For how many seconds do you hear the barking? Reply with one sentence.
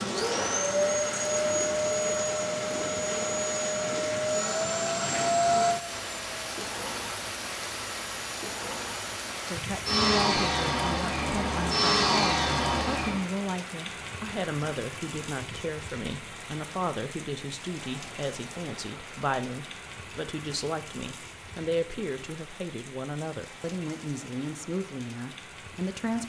The barking can't be heard in this clip.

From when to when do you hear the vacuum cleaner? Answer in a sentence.
You can hear the vacuum cleaner from 0.0 to 13.2 s.